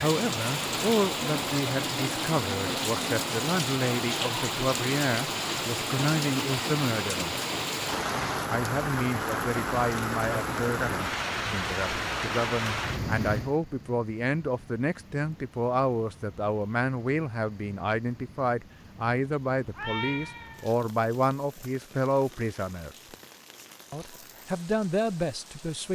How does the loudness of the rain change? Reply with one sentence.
The loudness of the rain goes down.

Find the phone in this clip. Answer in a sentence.
The phone can't be heard in this clip.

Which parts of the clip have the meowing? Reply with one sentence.
You can hear the meowing from 19.8 to 20.8 s.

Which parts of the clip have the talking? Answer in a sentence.
You can hear the talking from 0.0 to 7.3 s, from 8.5 to 22.9 s and from 23.9 to 25.9 s.